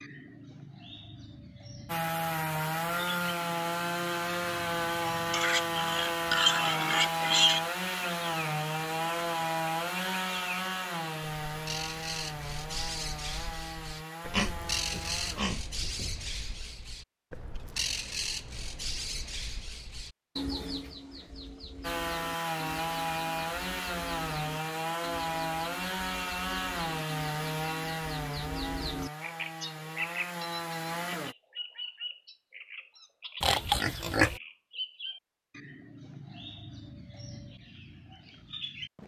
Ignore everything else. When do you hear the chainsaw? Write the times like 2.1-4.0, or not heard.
1.9-15.5, 21.8-31.4.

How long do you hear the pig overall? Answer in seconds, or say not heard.
5 s.